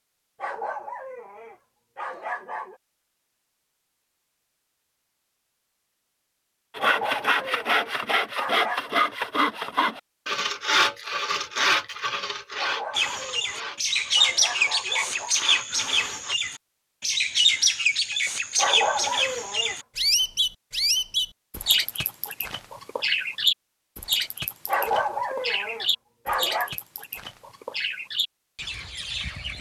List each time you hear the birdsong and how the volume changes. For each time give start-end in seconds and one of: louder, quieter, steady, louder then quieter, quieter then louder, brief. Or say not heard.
12.9-29.5 quieter.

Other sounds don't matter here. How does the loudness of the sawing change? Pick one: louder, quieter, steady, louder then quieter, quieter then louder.
quieter.